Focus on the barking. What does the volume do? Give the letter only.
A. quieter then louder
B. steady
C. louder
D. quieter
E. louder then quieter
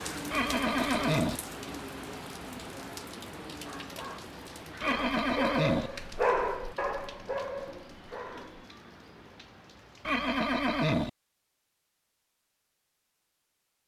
E.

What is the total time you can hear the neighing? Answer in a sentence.
The neighing can be heard for 3 seconds in total.